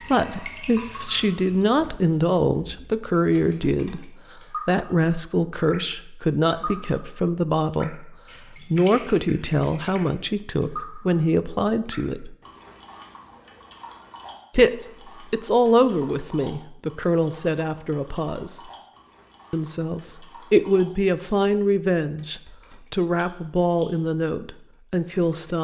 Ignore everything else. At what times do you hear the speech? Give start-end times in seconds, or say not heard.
0.1-12.3, 14.6-18.7, 19.5-25.5.